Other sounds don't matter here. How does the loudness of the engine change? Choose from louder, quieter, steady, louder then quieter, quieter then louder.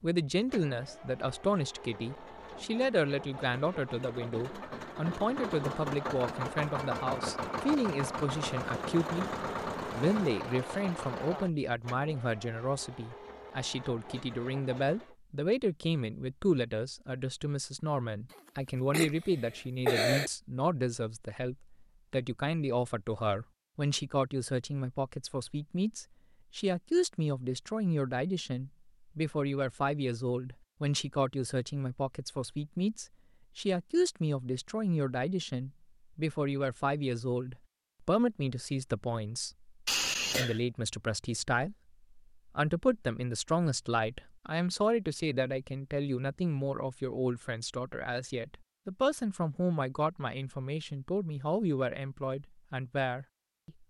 louder then quieter.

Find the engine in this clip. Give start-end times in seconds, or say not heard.
0.3-15.2.